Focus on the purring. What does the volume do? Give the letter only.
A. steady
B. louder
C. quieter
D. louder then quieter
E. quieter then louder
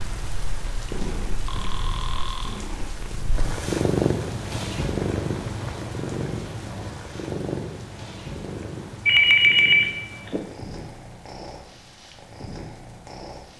D.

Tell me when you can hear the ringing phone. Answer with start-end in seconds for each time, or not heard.
1.4-2.6, 9.1-10.4.